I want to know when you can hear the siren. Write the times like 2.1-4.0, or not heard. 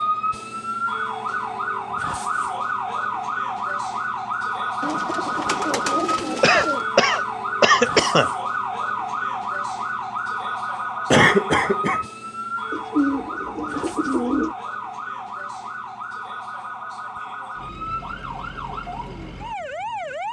0.0-20.2.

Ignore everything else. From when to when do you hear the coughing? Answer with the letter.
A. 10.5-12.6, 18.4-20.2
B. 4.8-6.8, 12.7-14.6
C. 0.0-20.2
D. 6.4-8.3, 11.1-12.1
D.